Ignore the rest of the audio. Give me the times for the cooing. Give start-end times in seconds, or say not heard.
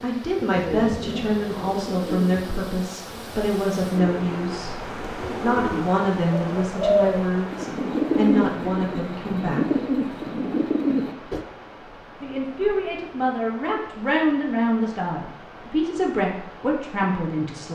0.3-11.4.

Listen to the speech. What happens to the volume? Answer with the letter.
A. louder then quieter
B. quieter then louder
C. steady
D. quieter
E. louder
C.